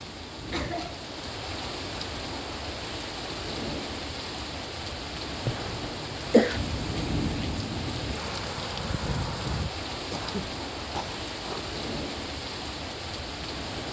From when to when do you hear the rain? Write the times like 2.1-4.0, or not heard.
0.0-13.8.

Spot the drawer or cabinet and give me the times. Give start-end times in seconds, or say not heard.
5.3-6.0.